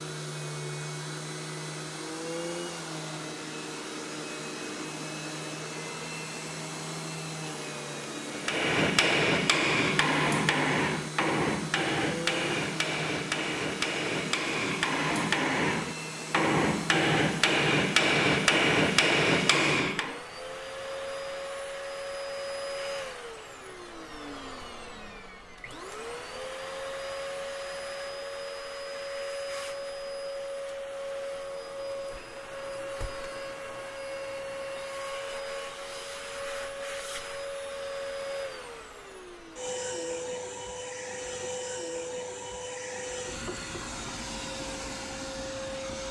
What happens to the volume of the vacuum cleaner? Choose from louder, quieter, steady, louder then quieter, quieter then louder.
steady.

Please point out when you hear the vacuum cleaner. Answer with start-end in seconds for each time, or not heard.
0.0-46.0.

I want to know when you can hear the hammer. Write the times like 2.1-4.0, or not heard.
8.3-20.2.